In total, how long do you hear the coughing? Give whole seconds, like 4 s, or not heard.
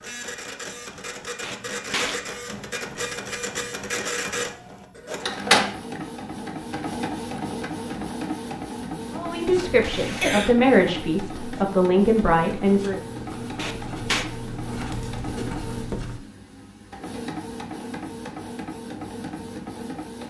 3 s.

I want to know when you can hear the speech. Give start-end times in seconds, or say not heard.
9.1-13.0.